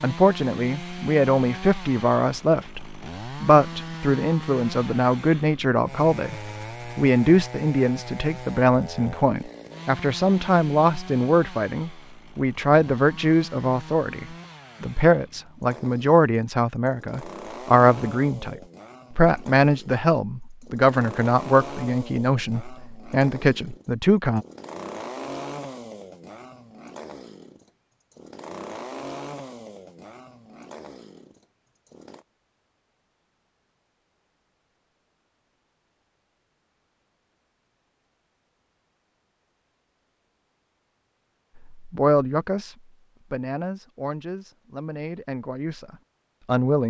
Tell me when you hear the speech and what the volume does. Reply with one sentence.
You can hear the speech from 0.0 to 24.4 s, at a steady volume; and from 41.6 to 46.8 s, getting quieter.